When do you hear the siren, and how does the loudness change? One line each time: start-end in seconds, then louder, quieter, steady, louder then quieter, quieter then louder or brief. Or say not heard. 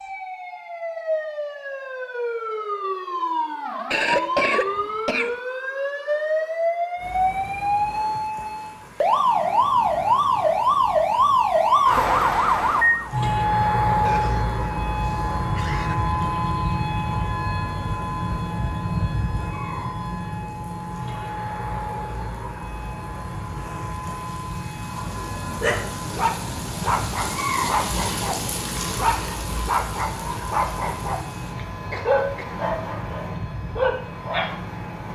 0.0-35.0 louder then quieter.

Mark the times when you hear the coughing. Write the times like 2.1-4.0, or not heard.
3.9-5.4, 14.0-15.9, 31.9-32.6.